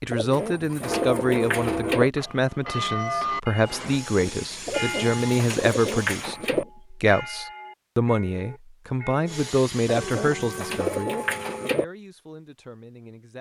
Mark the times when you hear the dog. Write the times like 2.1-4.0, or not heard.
not heard.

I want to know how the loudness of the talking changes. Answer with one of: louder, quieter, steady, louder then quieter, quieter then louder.
quieter.